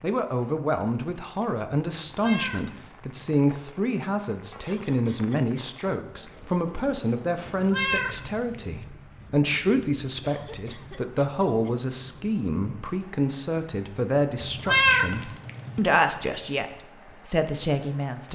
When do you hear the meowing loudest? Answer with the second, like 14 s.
15 s.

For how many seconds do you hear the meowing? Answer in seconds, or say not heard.
4 s.